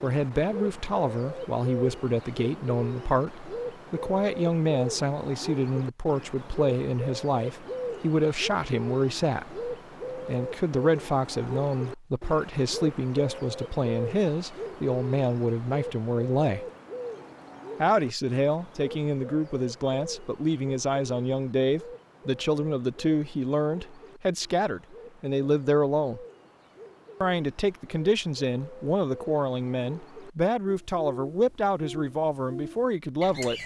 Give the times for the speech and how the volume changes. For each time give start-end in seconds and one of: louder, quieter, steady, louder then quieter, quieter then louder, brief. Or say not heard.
0.0-16.6 steady
17.8-26.2 steady
27.2-33.6 steady.